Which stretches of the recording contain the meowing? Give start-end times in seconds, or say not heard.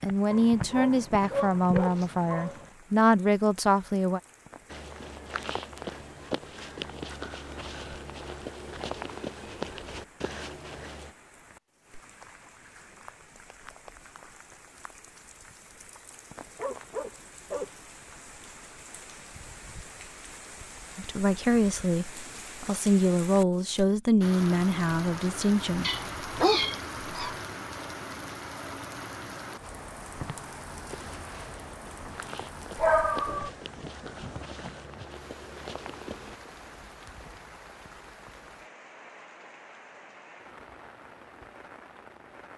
25.8-27.3.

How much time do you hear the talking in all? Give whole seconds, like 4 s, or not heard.
9 s.